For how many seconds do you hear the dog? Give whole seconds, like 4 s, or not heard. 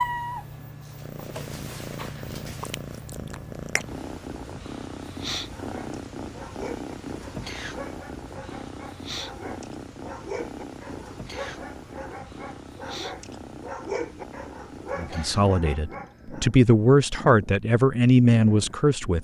11 s.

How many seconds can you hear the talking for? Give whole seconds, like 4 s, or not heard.
4 s.